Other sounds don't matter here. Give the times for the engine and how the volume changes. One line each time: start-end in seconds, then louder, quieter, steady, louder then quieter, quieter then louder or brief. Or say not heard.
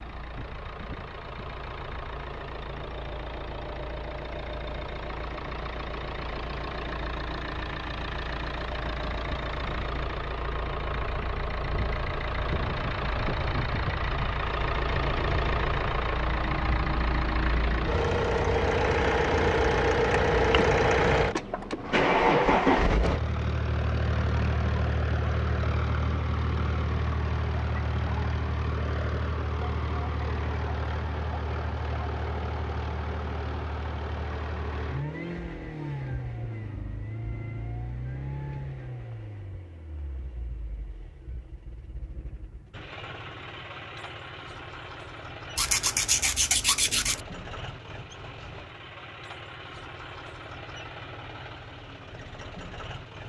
0.0-53.2 louder then quieter.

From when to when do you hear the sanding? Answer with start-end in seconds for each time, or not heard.
45.5-47.2.